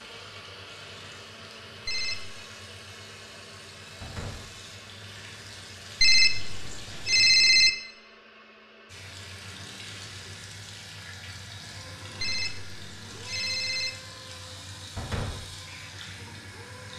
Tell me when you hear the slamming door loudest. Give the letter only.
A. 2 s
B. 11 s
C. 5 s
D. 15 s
D.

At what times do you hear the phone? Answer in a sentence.
The phone can be heard from 1.9 to 2.4 s, from 6.0 to 7.7 s and from 12.2 to 13.9 s.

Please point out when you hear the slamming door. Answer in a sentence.
The slamming door can be heard from 4.0 to 4.5 s and from 14.9 to 15.4 s.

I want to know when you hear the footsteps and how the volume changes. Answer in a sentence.
You can't hear the footsteps here.